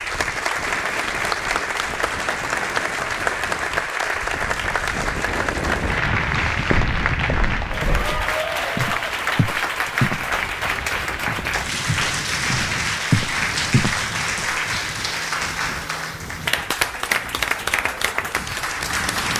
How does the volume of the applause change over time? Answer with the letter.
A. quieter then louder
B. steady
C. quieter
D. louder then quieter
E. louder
B.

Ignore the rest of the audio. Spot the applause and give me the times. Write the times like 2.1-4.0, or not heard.
0.0-19.3.